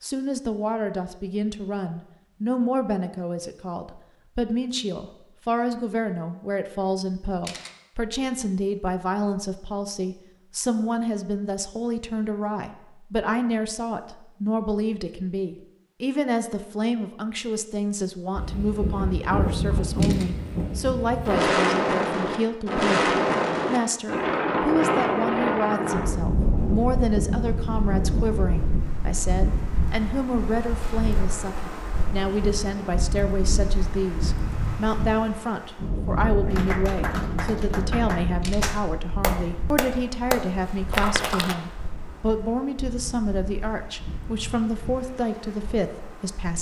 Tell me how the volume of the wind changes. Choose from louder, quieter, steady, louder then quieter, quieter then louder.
quieter.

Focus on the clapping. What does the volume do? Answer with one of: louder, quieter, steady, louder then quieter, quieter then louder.
louder.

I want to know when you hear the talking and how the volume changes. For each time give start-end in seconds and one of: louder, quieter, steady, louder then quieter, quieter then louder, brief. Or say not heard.
0.0-46.5 steady.